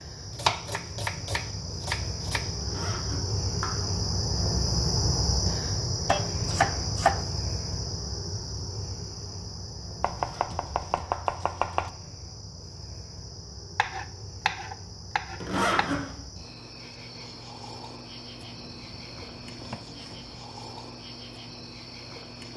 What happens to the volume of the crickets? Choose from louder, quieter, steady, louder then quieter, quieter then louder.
quieter.